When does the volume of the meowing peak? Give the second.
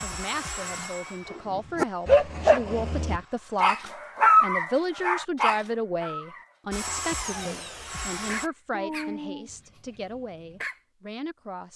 9 s.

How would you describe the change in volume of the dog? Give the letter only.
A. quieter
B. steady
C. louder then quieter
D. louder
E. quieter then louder
A.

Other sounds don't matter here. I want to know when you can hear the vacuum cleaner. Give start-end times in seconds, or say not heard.
0.0-3.8, 6.7-8.5.